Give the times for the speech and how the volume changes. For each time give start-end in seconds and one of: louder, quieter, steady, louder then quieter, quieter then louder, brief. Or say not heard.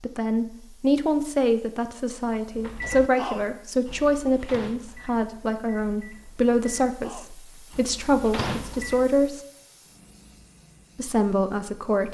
0.0-9.4 steady
10.9-12.0 brief.